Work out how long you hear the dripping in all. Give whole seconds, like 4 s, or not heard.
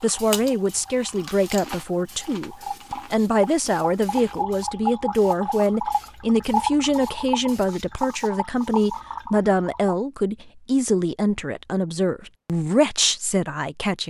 10 s.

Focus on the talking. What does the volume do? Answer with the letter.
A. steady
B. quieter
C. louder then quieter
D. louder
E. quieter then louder
A.